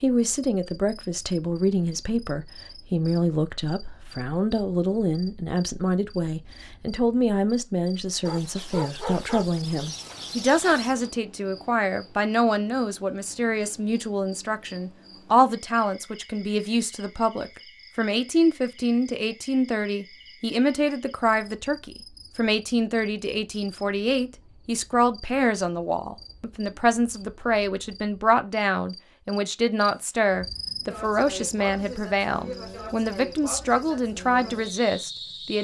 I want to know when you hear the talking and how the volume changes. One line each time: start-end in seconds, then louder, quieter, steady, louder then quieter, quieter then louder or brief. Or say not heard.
0.0-35.6 steady.